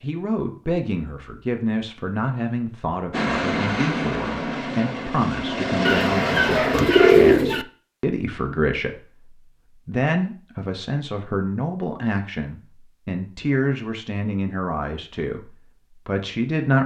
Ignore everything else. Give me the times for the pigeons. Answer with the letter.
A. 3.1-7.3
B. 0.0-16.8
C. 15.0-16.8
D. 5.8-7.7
D.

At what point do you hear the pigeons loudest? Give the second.
7 s.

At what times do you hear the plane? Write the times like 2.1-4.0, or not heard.
3.1-7.3.